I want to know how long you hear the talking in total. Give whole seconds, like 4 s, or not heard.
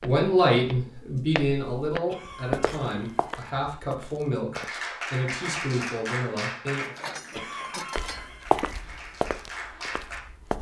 7 s.